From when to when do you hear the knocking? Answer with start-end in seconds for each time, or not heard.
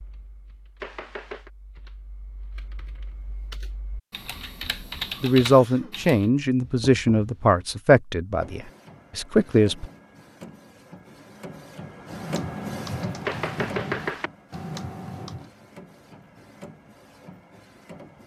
0.8-1.5, 6.6-7.8, 13.2-14.3.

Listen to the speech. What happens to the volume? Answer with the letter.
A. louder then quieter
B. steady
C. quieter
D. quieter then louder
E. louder
D.